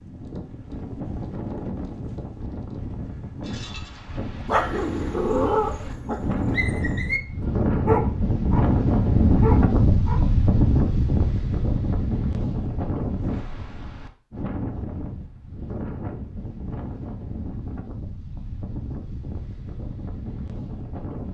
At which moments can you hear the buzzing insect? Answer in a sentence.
You can't hear the buzzing insect here.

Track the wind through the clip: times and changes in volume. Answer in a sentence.
You can hear the wind from 0.0 to 21.2 s, getting louder then quieter.